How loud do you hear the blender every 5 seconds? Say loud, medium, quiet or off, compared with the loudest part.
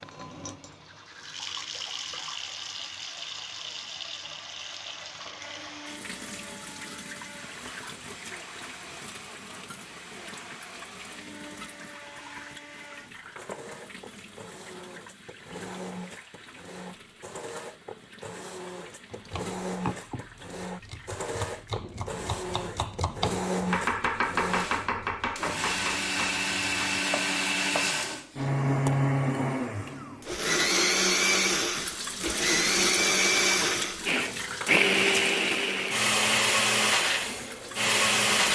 off, quiet, quiet, quiet, medium, loud, loud, loud.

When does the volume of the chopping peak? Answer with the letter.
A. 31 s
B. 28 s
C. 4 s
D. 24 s
D.